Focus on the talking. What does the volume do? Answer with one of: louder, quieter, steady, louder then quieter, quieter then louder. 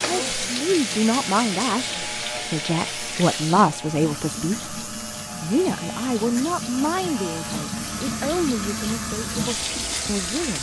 quieter.